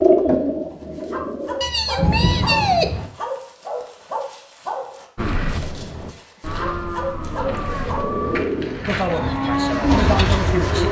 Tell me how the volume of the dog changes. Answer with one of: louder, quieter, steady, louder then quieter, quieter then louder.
quieter then louder.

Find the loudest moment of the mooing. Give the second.
10 s.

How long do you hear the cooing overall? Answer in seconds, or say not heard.
5 s.